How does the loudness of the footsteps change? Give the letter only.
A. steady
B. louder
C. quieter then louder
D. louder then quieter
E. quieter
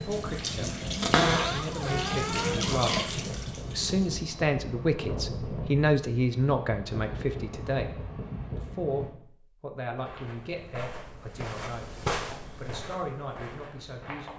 D.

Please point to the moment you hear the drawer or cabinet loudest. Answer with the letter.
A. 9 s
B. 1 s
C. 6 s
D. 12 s
B.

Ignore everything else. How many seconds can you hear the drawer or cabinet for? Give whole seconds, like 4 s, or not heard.
2 s.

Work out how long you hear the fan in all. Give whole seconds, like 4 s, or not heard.
9 s.